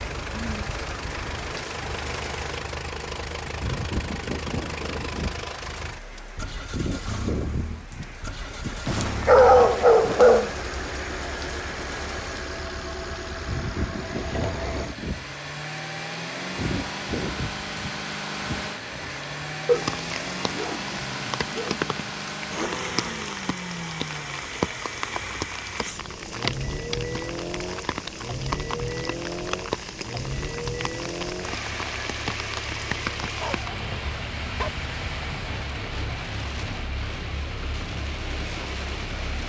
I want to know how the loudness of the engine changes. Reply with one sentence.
The loudness of the engine stays about the same.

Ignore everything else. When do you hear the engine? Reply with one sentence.
The engine can be heard from 0.0 to 39.4 s.